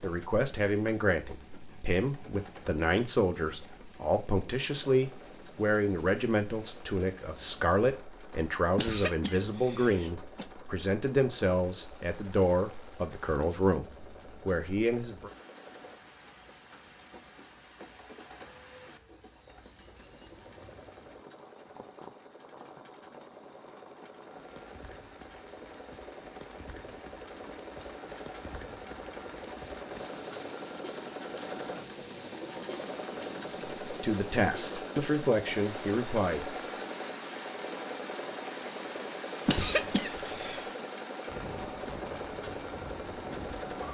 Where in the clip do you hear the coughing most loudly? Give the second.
40 s.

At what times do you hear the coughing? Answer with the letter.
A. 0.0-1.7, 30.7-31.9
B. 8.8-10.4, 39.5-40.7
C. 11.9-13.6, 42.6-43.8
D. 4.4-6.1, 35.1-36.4
B.